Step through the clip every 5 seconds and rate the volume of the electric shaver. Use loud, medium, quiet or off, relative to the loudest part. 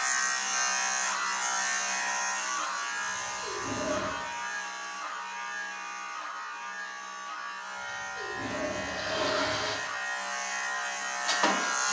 loud, medium, loud.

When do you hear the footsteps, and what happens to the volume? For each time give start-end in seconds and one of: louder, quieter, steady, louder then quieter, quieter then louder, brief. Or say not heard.
not heard.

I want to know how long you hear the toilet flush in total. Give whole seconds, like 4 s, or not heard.
3 s.